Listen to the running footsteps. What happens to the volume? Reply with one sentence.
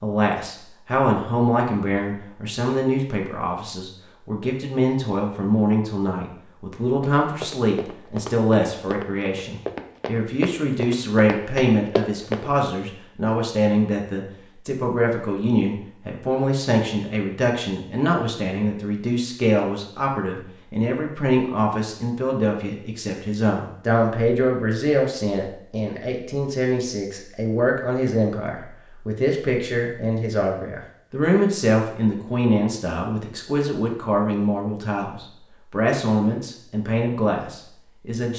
The loudness of the running footsteps goes up.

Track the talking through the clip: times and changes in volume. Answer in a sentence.
The talking can be heard from 0.0 to 38.3 s, at a steady volume.